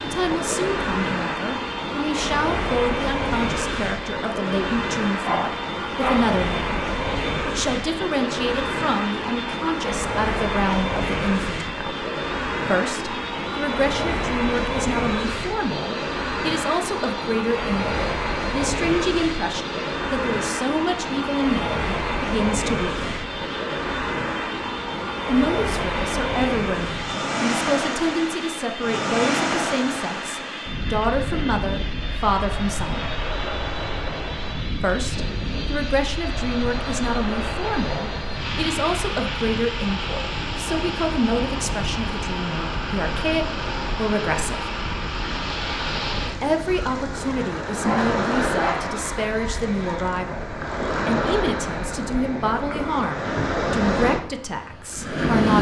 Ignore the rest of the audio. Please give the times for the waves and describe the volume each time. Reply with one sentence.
The waves can be heard from 0.0 to 55.5 s, at a steady volume.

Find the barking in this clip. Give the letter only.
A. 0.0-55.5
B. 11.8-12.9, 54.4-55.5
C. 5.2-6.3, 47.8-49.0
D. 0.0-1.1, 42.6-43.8
C.